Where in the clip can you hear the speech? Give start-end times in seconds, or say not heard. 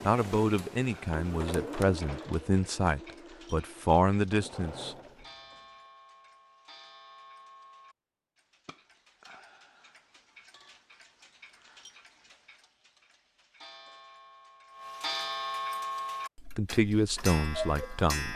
0.1-5.0, 16.6-18.3.